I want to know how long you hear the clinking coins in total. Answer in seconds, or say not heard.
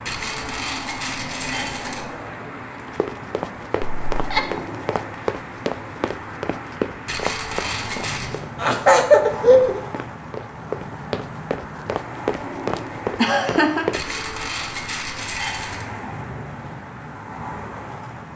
5 s.